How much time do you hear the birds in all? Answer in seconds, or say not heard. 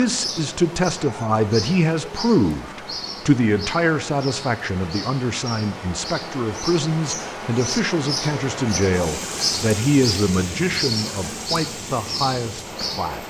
13 s.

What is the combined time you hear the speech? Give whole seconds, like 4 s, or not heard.
13 s.